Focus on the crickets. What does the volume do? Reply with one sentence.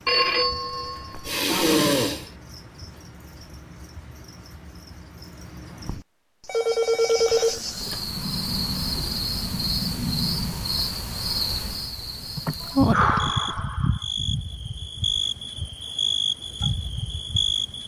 The loudness of the crickets goes up.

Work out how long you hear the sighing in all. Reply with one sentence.
You can hear the sighing for 3 seconds altogether.